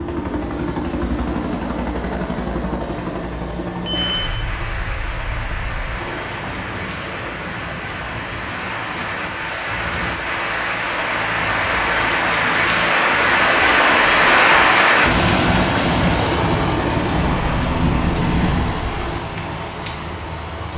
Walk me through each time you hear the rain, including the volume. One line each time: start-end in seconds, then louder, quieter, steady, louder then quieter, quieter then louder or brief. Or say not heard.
3.9-20.7 louder then quieter.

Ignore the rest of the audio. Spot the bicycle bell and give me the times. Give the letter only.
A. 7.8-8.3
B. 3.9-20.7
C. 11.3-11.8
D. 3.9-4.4
D.